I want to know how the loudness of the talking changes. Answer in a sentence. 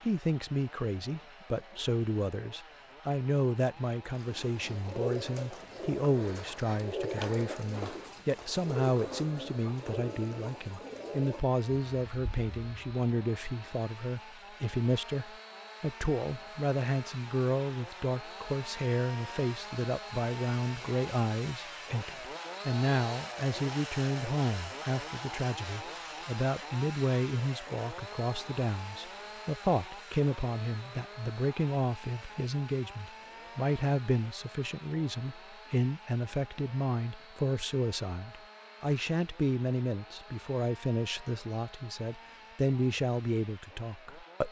The volume of the talking stays about the same.